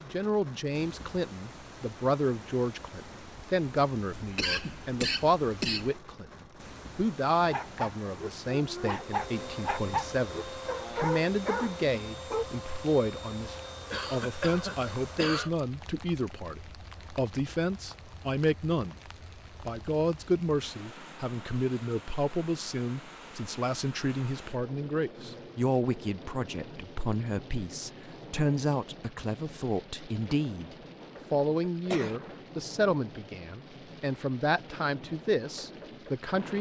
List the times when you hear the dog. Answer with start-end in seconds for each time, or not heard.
7.4-12.4.